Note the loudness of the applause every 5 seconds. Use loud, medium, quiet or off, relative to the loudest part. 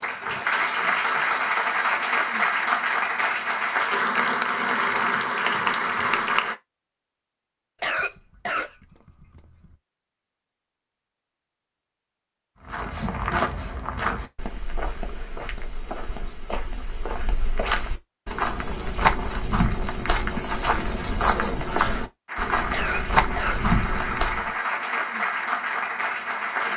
loud, loud, off, off, medium, loud.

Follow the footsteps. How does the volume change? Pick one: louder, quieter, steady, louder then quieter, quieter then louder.
quieter then louder.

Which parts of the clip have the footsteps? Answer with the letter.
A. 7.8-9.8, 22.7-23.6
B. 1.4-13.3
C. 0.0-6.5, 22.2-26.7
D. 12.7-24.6
D.